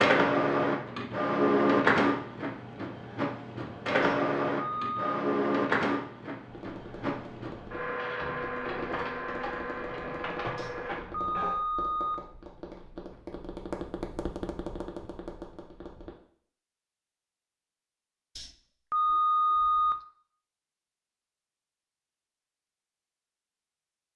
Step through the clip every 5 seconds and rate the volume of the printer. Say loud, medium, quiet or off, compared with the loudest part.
loud, medium, medium, off, off.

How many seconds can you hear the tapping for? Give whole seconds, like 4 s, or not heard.
10 s.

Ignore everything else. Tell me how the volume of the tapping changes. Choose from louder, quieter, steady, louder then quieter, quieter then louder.
louder.